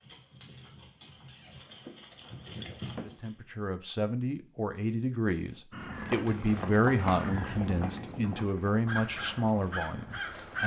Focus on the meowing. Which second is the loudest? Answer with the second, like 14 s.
3 s.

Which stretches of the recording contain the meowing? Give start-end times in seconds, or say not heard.
1.2-3.2.